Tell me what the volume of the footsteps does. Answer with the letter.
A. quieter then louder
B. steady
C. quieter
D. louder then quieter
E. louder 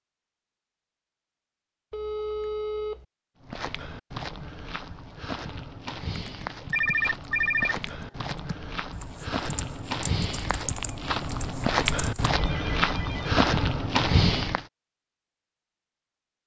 E.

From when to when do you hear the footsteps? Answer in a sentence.
You can hear the footsteps from 3.4 to 14.7 s.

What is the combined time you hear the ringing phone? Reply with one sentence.
The ringing phone can be heard for 3 seconds in total.